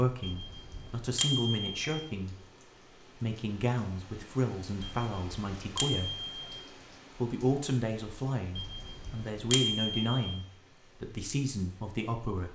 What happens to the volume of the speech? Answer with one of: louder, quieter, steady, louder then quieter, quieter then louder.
steady.